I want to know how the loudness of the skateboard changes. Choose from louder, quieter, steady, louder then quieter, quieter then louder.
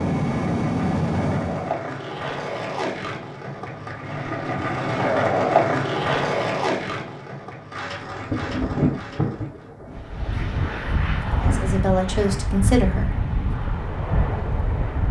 louder then quieter.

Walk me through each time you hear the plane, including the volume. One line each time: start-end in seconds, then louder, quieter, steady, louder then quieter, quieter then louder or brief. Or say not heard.
0.0-1.8 brief
9.9-15.0 steady.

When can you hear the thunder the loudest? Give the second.
9 s.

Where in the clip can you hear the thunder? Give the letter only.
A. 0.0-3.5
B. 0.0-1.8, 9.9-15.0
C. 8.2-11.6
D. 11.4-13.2
C.